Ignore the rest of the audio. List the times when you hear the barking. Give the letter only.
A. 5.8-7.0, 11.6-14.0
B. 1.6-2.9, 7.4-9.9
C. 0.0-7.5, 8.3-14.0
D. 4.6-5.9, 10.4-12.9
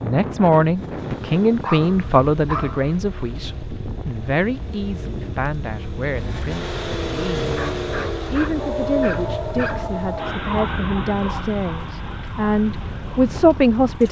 B.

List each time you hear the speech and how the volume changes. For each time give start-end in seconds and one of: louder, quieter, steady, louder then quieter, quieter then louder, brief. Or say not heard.
0.0-7.5 quieter
8.3-14.0 louder.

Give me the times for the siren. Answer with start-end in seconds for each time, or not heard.
8.6-14.0.